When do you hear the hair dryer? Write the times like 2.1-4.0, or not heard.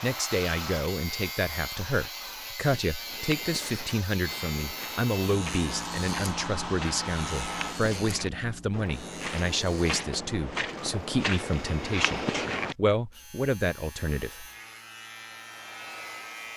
0.0-2.6, 4.2-7.8, 14.2-16.5.